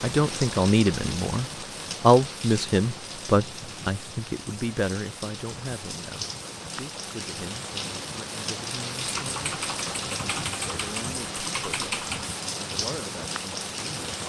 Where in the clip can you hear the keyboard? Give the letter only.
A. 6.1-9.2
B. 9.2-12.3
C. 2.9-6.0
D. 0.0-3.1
B.